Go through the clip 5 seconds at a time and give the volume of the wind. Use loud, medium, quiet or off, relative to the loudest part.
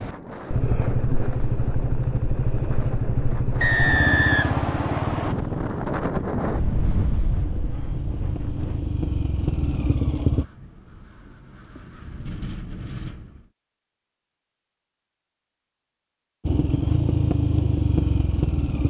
medium, loud, medium, off.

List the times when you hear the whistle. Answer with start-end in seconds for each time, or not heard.
3.6-5.3.